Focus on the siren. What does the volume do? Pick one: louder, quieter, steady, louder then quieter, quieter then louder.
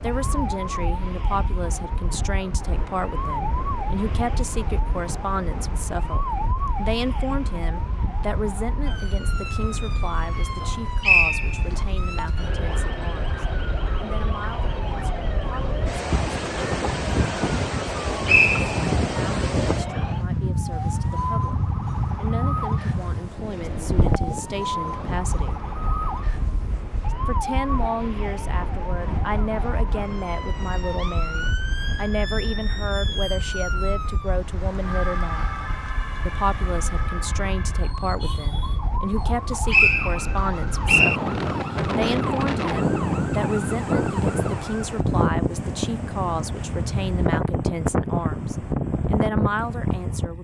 steady.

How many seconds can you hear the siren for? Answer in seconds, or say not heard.
45 s.